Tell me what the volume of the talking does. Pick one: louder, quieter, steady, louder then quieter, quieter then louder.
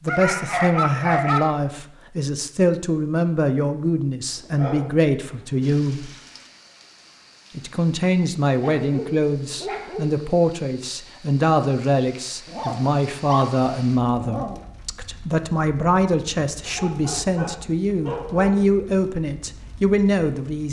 steady.